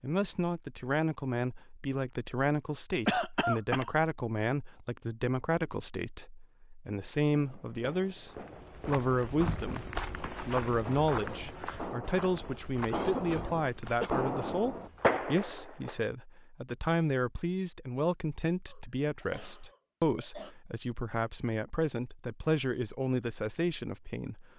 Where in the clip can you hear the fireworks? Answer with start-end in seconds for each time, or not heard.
7.3-15.9.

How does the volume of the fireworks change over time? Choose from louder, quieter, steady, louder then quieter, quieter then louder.
louder.